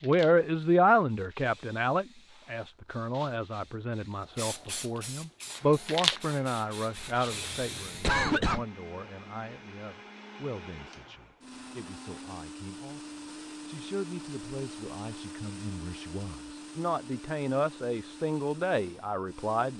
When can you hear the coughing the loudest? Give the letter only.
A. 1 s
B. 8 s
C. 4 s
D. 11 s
B.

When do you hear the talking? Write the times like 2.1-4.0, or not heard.
0.0-19.7.